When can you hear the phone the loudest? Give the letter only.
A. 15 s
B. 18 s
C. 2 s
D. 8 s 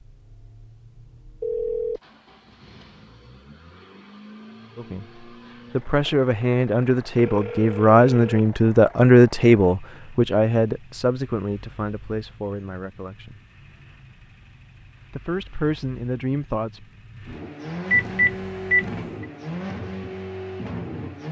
B.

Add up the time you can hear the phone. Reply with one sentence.
You can hear the phone for 3 seconds altogether.